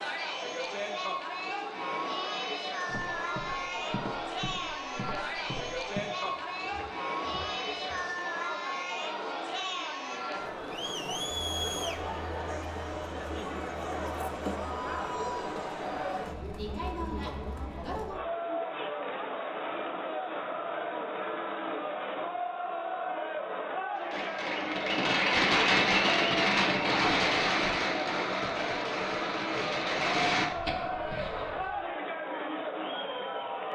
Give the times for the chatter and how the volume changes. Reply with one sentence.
The chatter can be heard from 0.0 to 33.7 s, at a steady volume.